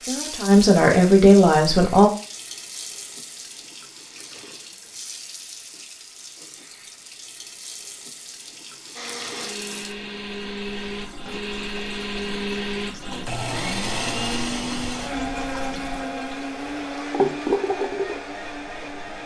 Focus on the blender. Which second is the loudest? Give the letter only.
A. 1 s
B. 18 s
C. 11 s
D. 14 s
D.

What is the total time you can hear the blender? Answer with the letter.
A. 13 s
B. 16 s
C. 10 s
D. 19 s
C.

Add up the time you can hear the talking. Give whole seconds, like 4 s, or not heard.
2 s.